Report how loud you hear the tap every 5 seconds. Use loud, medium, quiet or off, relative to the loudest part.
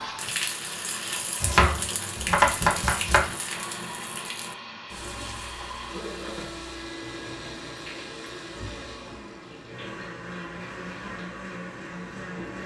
loud, medium, medium.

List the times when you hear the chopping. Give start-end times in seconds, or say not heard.
1.4-3.3.